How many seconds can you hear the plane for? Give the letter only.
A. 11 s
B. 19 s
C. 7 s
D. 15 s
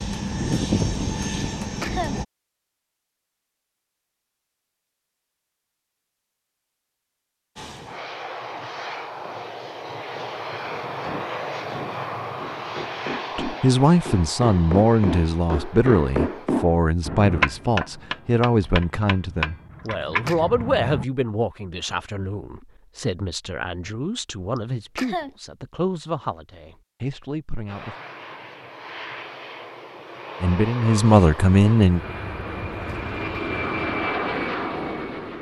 B.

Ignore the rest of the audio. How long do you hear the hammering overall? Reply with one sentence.
The hammering can be heard for 10 seconds in total.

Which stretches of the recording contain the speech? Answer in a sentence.
The speech can be heard from 13.3 to 27.9 s and from 30.4 to 32.0 s.